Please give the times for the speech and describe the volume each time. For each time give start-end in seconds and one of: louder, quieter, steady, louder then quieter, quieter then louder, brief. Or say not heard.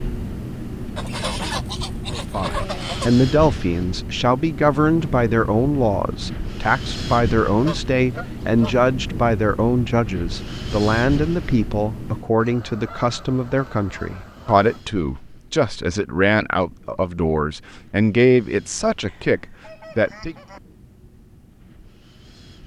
2.1-20.4 steady.